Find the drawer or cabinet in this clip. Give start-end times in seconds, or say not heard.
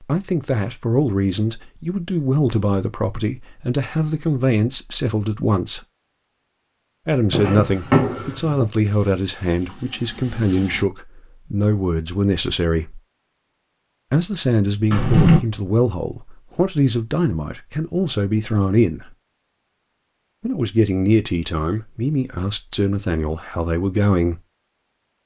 7.3-8.7, 14.9-15.4.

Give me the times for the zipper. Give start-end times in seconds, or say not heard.
not heard.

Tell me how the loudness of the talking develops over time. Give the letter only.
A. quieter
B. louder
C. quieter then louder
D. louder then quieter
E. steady
E.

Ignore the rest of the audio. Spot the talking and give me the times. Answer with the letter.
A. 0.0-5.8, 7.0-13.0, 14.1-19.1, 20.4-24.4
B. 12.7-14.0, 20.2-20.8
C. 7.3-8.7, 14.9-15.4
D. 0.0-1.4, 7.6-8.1
A.